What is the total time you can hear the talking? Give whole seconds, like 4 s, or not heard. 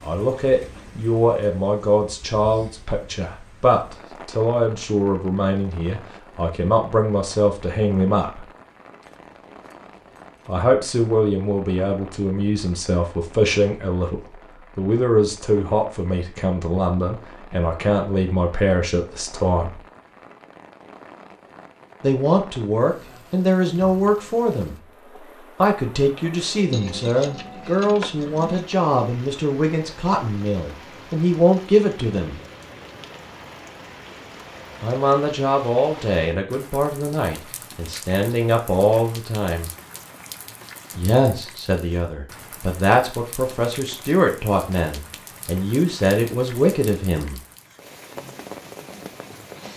39 s.